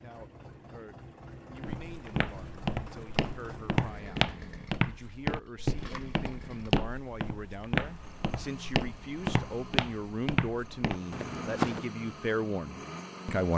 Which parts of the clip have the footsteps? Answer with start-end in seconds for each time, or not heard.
1.6-11.8.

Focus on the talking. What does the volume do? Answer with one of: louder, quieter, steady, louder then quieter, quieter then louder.
louder.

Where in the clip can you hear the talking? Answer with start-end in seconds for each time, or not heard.
0.0-13.5.